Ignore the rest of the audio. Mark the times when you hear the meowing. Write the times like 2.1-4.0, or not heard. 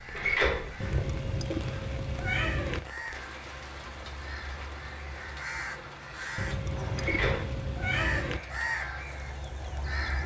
0.8-2.8, 6.3-8.4.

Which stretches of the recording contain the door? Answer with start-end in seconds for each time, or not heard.
0.1-0.8, 7.0-7.5.